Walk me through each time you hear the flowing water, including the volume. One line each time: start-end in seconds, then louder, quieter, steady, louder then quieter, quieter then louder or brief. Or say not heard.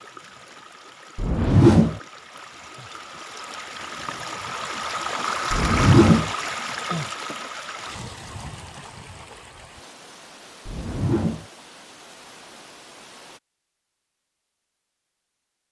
0.0-13.4 louder then quieter.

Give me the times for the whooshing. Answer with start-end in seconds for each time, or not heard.
1.1-2.0, 5.5-6.3, 10.7-11.4.